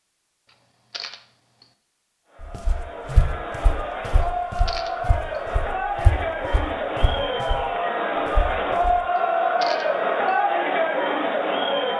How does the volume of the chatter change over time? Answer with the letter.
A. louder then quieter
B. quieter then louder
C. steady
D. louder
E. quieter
D.